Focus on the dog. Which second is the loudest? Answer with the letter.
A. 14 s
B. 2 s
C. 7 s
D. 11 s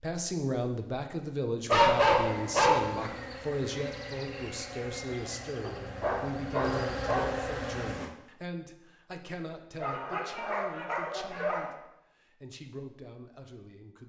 B.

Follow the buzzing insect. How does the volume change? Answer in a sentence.
The loudness of the buzzing insect goes up.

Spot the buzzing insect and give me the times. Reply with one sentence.
You can hear the buzzing insect from 2.2 to 8.2 s.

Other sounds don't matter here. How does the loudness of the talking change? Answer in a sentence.
The loudness of the talking goes down.